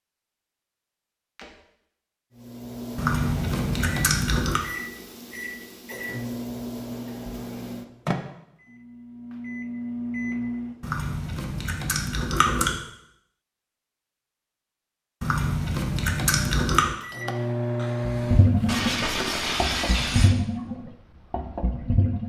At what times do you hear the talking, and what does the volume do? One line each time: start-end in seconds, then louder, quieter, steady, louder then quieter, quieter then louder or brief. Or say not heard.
not heard.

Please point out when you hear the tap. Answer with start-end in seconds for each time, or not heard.
18.1-22.2.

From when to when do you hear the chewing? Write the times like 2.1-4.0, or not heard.
3.0-4.6, 10.8-12.8, 15.2-16.9.